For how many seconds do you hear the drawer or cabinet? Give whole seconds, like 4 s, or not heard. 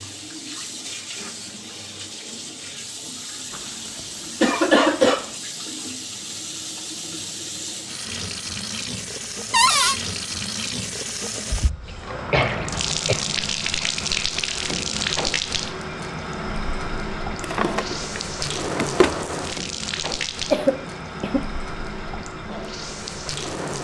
2 s.